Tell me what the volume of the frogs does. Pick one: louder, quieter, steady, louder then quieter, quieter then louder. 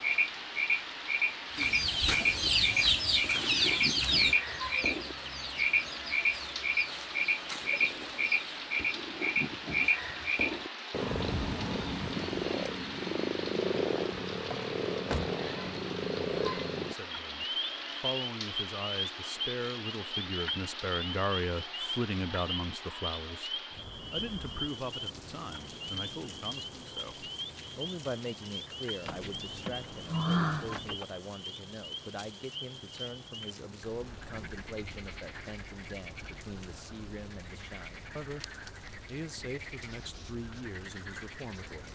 quieter.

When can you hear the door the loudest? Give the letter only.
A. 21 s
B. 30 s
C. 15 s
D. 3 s
B.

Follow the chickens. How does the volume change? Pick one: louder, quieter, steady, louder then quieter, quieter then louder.
quieter.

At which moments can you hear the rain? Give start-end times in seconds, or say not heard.
0.0-41.8.